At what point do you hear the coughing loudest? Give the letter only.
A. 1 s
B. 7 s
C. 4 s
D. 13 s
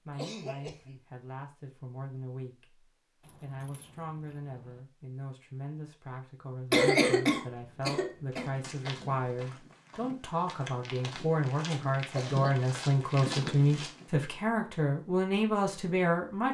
B.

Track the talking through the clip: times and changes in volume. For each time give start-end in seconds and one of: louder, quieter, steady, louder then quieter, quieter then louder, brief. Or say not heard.
0.1-16.4 louder.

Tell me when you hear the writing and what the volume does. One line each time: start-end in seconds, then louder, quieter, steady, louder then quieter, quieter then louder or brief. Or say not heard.
not heard.